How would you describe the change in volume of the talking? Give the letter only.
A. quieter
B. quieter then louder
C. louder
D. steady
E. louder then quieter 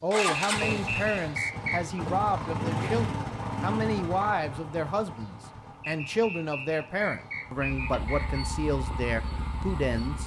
D.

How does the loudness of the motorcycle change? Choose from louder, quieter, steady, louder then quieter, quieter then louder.
quieter then louder.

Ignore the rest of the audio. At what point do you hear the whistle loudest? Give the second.
2 s.